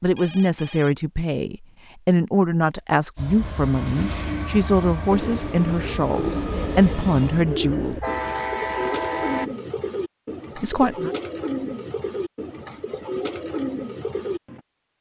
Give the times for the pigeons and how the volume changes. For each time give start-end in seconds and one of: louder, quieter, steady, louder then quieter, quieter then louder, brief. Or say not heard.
5.0-14.6 steady.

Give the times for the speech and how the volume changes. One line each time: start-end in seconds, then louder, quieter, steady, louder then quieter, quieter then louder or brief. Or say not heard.
0.0-8.0 steady
10.6-11.1 brief.